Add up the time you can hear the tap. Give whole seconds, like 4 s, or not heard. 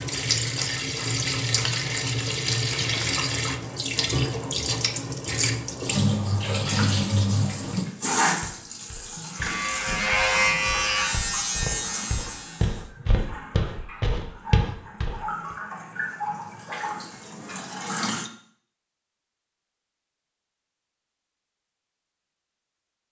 18 s.